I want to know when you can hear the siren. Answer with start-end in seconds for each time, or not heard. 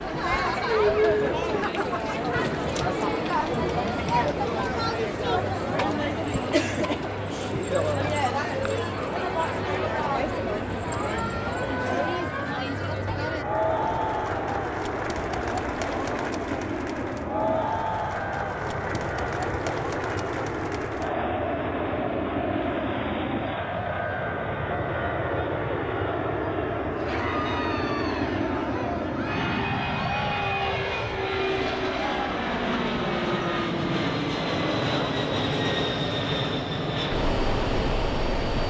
not heard.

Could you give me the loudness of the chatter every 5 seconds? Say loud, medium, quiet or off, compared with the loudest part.
loud, loud, loud, medium, medium, medium, medium, medium.